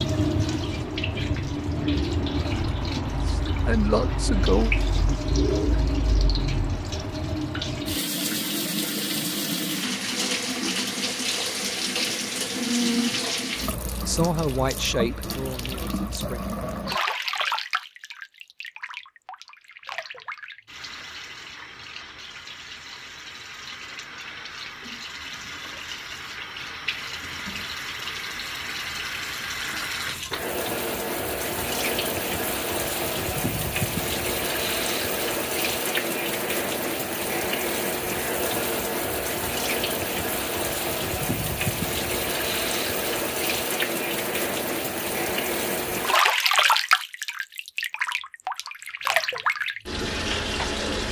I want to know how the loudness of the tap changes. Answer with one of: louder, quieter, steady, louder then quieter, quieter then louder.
quieter then louder.